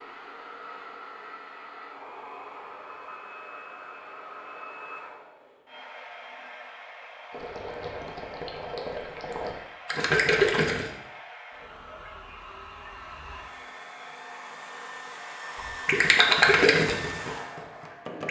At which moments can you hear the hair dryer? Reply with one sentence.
You can hear the hair dryer from 0.0 to 18.2 s.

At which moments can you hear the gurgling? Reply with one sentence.
The gurgling can be heard from 7.3 to 10.9 s and from 15.6 to 18.2 s.